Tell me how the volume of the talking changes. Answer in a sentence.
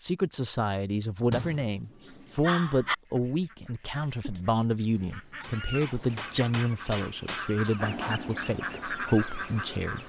The volume of the talking stays about the same.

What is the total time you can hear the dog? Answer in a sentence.
The dog can be heard for 2 seconds in total.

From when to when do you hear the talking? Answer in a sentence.
You can hear the talking from 0.0 to 10.0 s.